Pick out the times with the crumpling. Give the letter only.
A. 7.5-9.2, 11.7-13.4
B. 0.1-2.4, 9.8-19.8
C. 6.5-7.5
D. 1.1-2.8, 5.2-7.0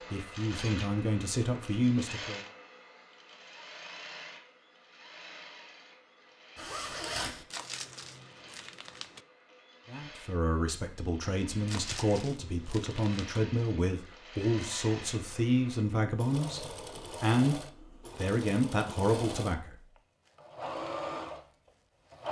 A.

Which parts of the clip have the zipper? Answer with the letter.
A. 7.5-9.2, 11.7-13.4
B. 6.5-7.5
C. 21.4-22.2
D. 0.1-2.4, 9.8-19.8
B.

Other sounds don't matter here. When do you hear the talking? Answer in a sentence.
The talking can be heard from 0.1 to 2.4 s and from 9.8 to 19.8 s.